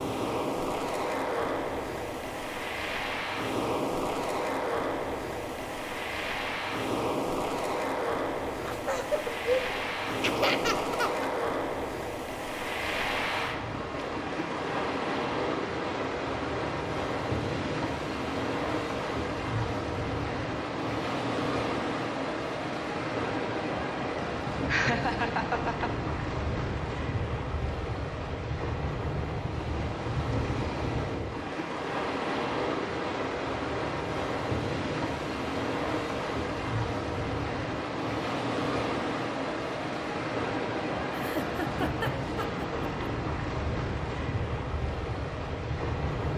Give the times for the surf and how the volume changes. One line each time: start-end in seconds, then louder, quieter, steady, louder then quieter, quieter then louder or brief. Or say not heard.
0.0-46.3 steady.